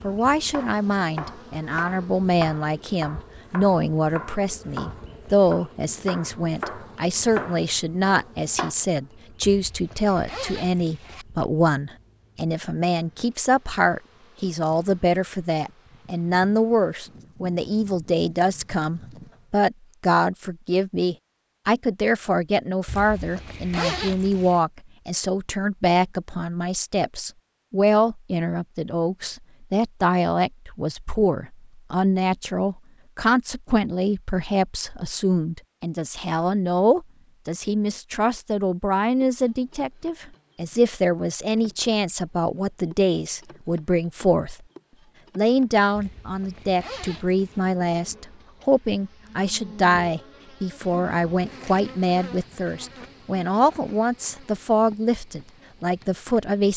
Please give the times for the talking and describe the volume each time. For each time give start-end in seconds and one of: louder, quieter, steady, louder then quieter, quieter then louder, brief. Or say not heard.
0.0-44.5 steady
45.4-56.7 steady.